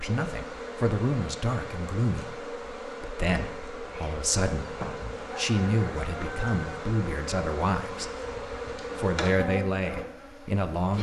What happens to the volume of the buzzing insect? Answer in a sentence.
The loudness of the buzzing insect stays about the same.